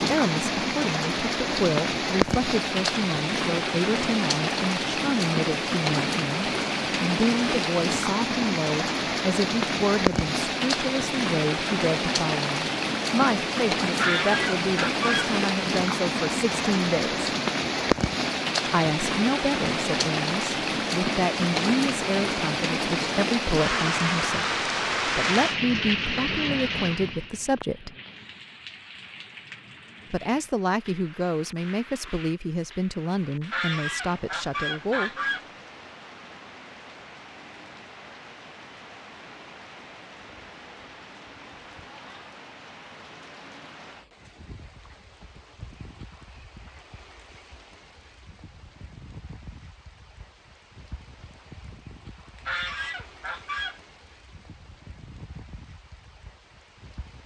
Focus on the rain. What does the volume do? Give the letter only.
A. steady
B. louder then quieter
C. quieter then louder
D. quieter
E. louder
D.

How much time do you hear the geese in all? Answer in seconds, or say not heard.
5 s.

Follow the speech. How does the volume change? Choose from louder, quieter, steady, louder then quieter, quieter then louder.
steady.